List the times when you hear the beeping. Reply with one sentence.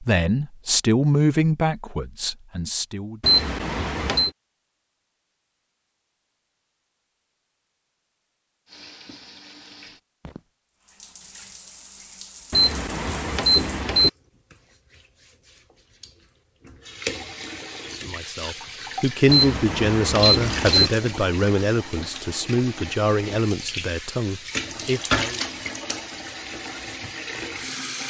You can hear the beeping from 3.2 to 4.3 s, from 12.5 to 14.1 s and from 19.2 to 20.9 s.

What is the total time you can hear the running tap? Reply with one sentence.
The running tap can be heard for 19 seconds in total.